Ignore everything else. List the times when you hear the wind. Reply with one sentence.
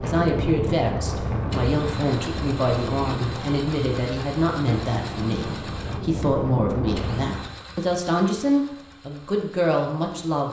The wind can be heard from 0.0 to 7.6 s.